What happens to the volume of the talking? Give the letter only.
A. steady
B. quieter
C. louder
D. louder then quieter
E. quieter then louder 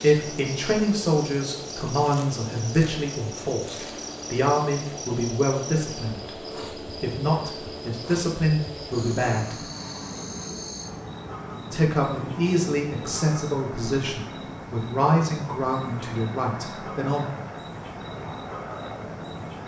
A.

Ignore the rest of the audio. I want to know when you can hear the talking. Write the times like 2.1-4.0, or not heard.
0.0-9.6, 11.7-17.2.